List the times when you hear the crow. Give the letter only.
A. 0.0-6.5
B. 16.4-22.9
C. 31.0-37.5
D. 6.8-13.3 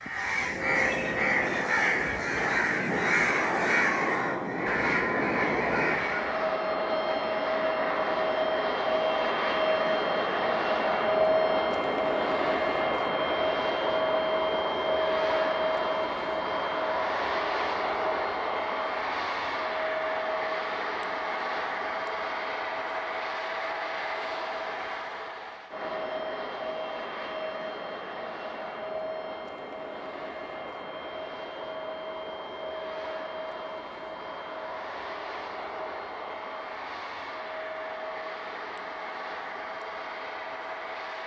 A.